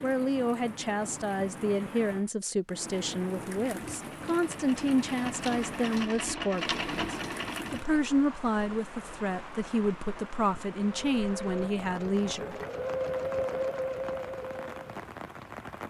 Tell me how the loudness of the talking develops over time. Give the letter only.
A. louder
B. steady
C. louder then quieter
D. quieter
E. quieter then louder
B.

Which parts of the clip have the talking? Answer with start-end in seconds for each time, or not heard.
0.0-12.6.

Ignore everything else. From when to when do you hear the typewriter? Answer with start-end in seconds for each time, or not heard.
not heard.